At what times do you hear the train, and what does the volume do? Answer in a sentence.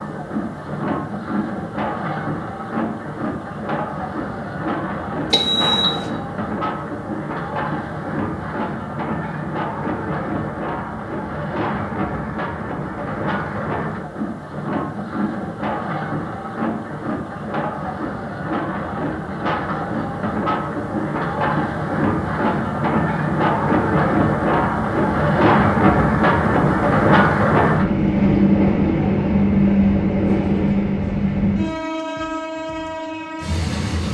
You can hear the train from 0.0 to 34.0 s, getting louder.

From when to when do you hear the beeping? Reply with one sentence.
The beeping can be heard from 5.3 to 6.1 s.